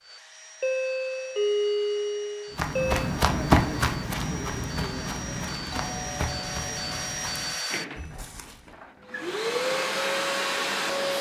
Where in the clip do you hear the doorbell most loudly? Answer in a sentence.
The volume of the doorbell peaks at 2 seconds.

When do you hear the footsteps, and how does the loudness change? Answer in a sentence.
The footsteps can be heard from 2.5 to 8.8 s, getting quieter.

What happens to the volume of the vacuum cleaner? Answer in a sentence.
The loudness of the vacuum cleaner goes up.